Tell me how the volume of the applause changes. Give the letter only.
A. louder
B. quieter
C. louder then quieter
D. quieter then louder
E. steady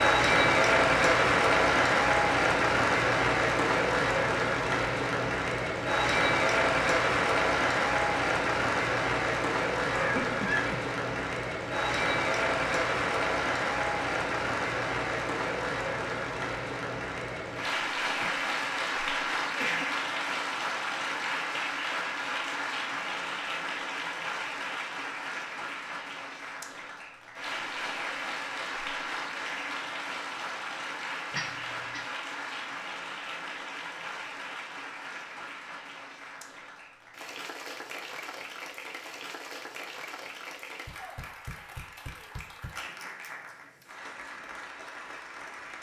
B.